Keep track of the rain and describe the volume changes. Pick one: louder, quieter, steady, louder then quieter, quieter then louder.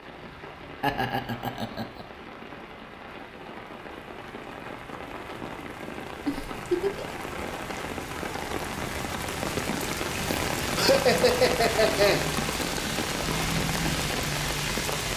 louder.